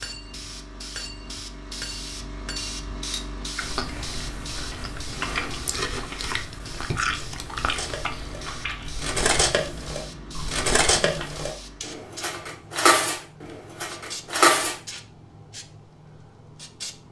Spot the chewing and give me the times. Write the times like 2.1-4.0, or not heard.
3.5-11.3.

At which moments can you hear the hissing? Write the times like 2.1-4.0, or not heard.
0.0-17.0.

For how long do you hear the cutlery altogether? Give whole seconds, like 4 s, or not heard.
10 s.